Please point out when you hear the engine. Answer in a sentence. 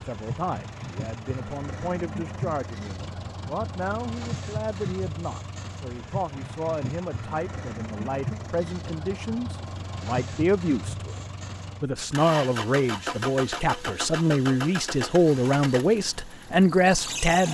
The engine can be heard from 0.0 to 17.4 s.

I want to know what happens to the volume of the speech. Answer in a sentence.
The loudness of the speech goes up.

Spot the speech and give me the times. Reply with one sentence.
The speech can be heard from 0.0 to 11.2 s and from 11.8 to 17.4 s.